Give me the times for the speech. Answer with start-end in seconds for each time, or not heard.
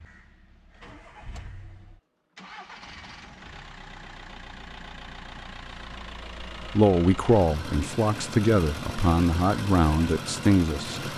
6.5-11.1.